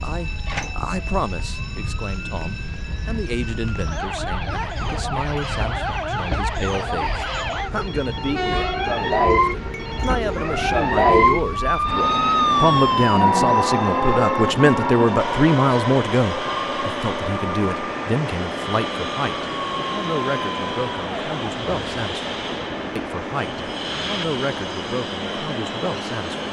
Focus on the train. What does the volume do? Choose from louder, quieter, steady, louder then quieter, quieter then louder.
louder.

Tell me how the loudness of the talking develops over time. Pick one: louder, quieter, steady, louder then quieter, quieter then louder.
louder then quieter.